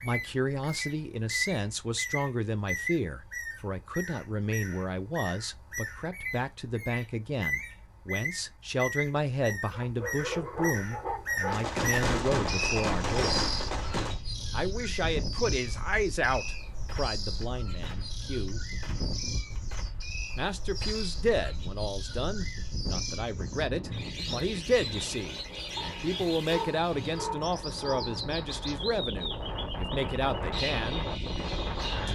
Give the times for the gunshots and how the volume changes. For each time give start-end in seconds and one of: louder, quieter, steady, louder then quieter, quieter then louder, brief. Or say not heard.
11.4-14.2 brief
16.9-21.2 quieter then louder.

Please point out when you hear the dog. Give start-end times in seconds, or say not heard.
9.4-11.6, 25.8-28.4.